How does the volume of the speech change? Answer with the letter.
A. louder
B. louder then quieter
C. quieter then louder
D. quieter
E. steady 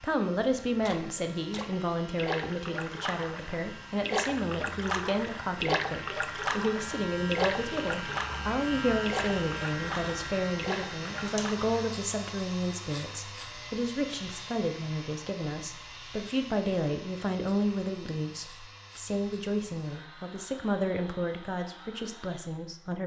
E.